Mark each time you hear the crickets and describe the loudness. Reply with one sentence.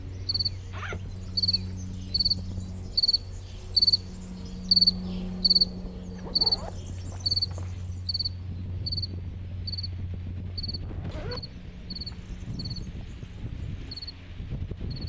The crickets can be heard from 0.0 to 15.0 s, getting louder then quieter.